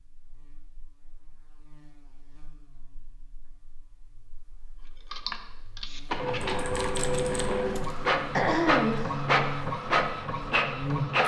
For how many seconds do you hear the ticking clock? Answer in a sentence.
The ticking clock can't be heard in this clip.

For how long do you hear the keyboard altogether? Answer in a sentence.
The keyboard can be heard for 3 seconds in total.